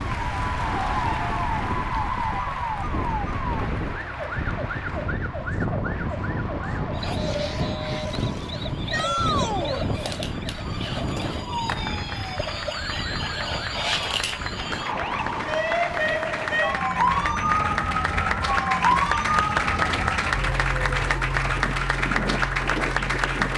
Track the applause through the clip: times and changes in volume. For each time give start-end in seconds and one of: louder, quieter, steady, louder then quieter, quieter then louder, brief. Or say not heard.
0.0-23.5 quieter then louder.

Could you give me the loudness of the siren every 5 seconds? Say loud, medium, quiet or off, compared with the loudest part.
medium, medium, medium, loud, medium.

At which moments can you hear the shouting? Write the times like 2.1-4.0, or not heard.
8.9-9.8.